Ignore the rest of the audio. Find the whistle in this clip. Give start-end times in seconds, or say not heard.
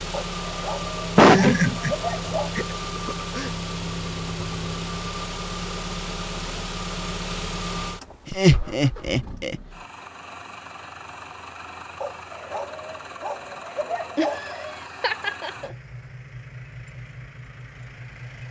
not heard.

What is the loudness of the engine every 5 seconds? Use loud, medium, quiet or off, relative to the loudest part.
loud, loud, medium, medium.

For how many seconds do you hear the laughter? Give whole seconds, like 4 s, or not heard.
5 s.